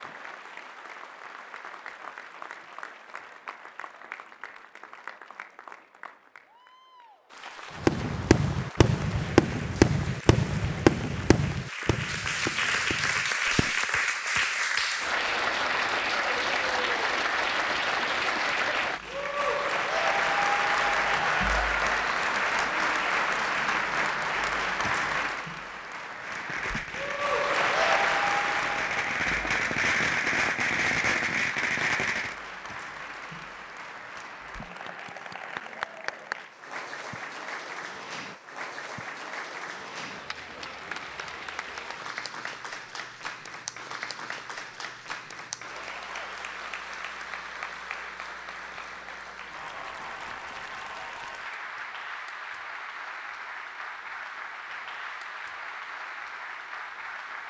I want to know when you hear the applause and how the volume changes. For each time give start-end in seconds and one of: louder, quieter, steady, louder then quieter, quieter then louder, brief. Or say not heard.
0.0-57.4 louder then quieter.